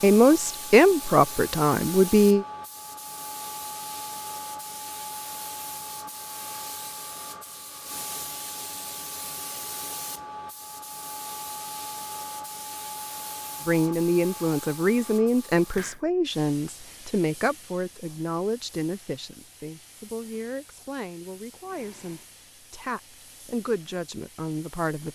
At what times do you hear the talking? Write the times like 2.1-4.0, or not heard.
0.0-2.5, 13.7-25.1.